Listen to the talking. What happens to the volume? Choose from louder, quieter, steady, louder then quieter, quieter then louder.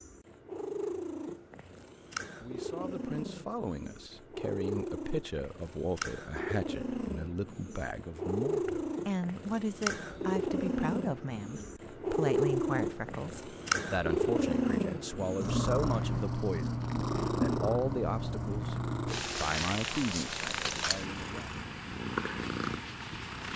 steady.